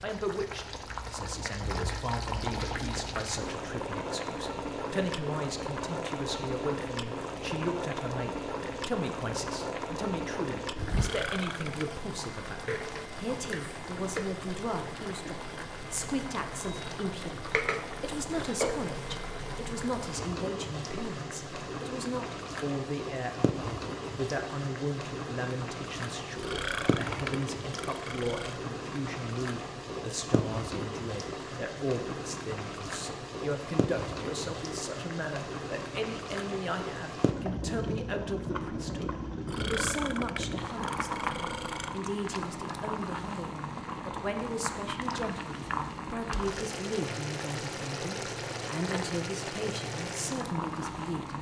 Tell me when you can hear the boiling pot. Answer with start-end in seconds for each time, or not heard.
0.0-51.3.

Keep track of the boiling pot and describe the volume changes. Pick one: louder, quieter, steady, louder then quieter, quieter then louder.
steady.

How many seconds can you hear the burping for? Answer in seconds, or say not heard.
6 s.